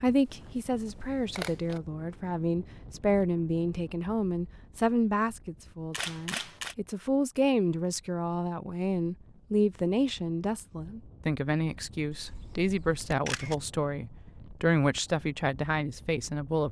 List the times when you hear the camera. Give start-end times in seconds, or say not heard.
0.2-1.8, 5.9-6.8, 12.1-13.6.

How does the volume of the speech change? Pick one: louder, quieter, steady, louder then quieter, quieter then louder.
steady.